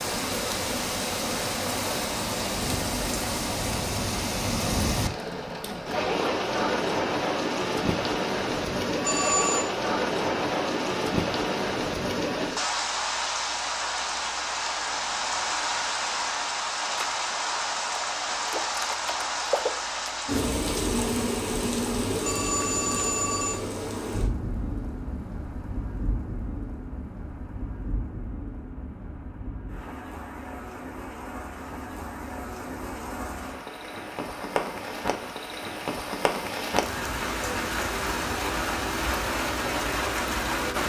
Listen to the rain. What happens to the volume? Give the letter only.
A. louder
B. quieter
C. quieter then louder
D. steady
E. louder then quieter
C.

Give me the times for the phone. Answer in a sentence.
You can hear the phone from 9.0 to 9.7 s and from 22.2 to 23.6 s.